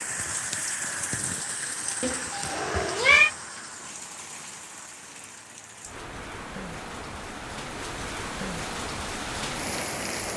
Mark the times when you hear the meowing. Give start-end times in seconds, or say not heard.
2.0-3.3.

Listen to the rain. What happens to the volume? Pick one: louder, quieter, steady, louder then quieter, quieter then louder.
quieter then louder.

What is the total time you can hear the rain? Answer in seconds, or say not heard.
10 s.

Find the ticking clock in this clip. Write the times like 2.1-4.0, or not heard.
not heard.